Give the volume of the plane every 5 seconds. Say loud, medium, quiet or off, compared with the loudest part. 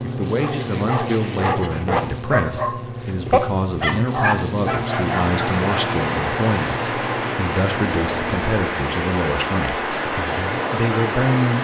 loud, loud, off.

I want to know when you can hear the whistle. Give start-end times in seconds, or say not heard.
not heard.